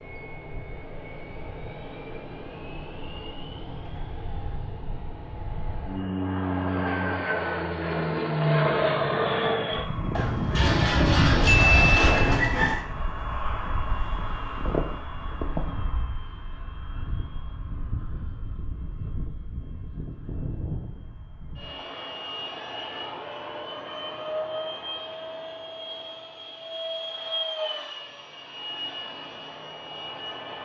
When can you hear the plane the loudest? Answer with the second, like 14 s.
9 s.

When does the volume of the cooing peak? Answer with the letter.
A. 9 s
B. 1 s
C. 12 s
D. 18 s
C.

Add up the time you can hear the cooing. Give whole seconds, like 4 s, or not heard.
3 s.